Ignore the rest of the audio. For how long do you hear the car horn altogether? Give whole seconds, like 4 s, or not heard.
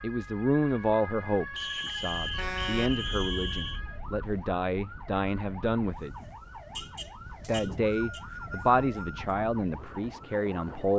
3 s.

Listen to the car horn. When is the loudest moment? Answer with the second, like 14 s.
3 s.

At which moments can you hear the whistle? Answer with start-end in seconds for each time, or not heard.
1.6-3.8, 7.4-9.3.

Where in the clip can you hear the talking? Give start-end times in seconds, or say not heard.
0.0-6.2, 7.5-10.9.